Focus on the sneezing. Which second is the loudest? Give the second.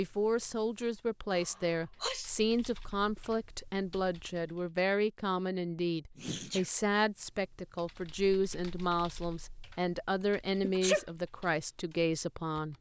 11 s.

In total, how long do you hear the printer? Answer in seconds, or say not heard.
not heard.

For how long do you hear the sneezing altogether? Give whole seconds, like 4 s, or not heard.
2 s.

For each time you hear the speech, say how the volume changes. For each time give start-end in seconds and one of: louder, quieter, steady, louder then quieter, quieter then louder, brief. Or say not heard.
0.0-12.7 steady.